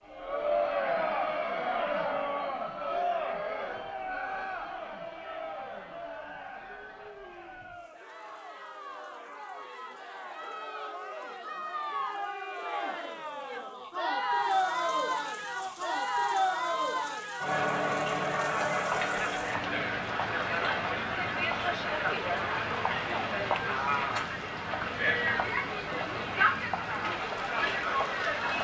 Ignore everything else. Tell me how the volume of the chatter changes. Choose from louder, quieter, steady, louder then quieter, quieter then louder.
quieter then louder.